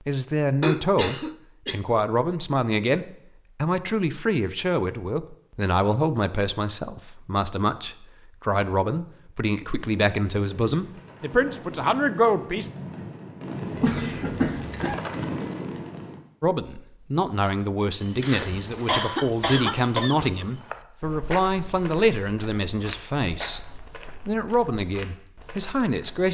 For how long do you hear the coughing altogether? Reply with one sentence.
You can hear the coughing for 4 seconds altogether.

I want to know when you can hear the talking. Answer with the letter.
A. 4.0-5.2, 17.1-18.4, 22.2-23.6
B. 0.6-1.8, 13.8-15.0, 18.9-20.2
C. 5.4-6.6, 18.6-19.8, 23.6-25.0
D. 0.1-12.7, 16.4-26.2
D.